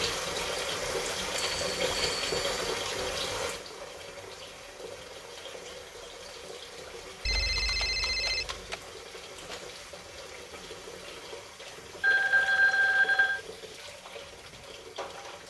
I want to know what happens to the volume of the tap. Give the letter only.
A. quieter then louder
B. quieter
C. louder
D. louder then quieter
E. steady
B.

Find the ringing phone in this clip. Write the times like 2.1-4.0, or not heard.
1.4-2.5, 7.2-8.8, 12.0-13.4.